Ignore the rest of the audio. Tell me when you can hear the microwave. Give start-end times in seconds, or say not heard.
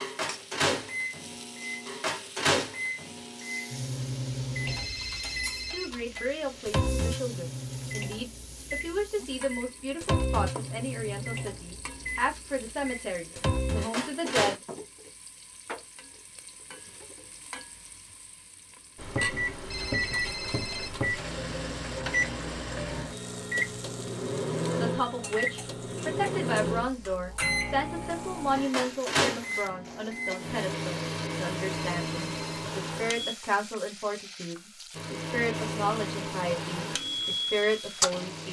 0.0-14.6, 18.9-33.4, 35.0-38.4.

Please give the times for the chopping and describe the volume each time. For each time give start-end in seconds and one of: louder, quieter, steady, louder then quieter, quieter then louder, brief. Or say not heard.
not heard.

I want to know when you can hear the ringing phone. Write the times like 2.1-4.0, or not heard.
4.7-6.2, 19.7-21.2, 31.8-32.5.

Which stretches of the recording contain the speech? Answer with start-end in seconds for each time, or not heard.
5.7-14.6, 24.7-38.4.